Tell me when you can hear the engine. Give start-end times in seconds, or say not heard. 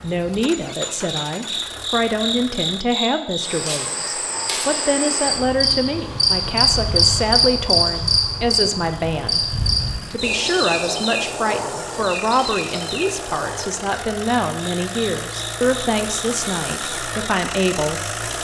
0.0-2.9, 9.1-18.3.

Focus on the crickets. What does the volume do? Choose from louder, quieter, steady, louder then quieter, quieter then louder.
louder then quieter.